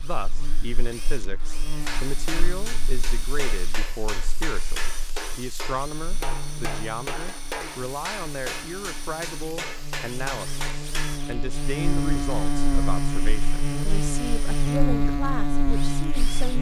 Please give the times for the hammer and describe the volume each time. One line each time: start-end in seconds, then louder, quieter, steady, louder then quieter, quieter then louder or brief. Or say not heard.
1.8-11.2 steady.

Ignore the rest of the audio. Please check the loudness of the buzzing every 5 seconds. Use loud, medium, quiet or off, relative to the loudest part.
quiet, quiet, loud, loud.